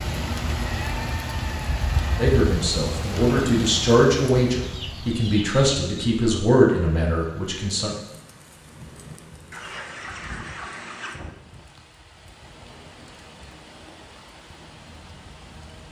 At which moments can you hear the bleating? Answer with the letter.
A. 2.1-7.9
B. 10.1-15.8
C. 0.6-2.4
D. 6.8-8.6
C.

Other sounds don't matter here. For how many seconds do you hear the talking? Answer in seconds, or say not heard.
6 s.